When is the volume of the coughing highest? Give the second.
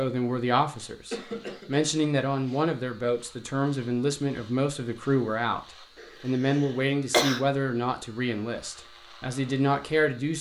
7 s.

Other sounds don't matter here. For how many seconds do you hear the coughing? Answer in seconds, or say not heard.
3 s.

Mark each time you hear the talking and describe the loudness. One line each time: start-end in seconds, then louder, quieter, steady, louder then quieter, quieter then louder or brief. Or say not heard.
0.0-5.6 steady
6.2-10.3 quieter then louder.